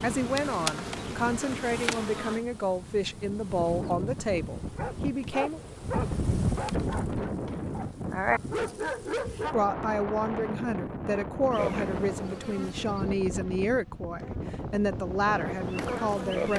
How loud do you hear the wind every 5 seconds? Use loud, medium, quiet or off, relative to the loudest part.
medium, loud, loud, loud.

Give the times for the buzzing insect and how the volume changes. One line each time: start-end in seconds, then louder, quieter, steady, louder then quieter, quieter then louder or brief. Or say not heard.
0.0-2.5 brief
11.5-16.5 quieter then louder.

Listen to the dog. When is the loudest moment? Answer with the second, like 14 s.
8 s.